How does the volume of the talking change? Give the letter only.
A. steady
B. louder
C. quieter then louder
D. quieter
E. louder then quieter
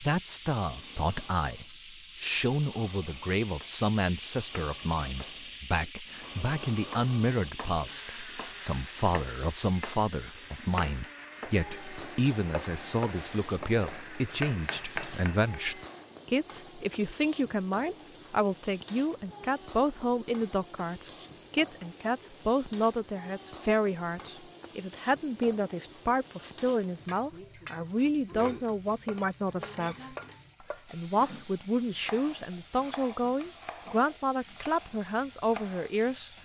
A.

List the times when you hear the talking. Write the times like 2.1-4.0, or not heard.
0.0-30.1, 30.9-36.3.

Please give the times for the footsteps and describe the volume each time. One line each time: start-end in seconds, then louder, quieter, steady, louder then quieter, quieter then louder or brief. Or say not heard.
not heard.